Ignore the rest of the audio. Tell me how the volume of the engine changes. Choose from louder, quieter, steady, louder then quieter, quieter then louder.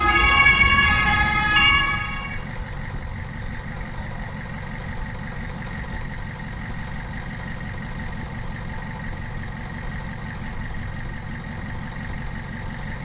steady.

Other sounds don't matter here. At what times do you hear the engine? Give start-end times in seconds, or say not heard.
0.0-12.9.